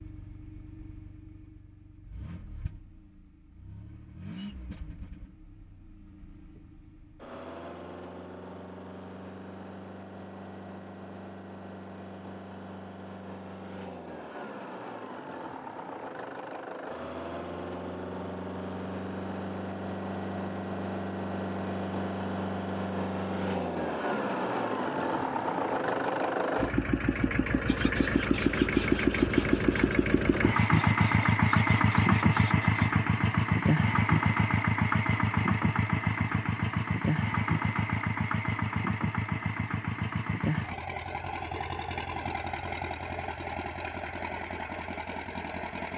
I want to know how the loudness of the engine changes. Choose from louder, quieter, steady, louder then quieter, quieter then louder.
louder then quieter.